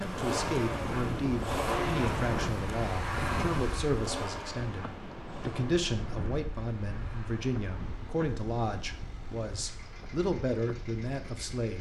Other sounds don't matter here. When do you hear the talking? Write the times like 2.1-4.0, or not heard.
0.0-11.7.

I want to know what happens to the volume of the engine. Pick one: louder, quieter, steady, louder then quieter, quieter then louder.
quieter.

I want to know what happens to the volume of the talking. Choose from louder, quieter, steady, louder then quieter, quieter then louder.
steady.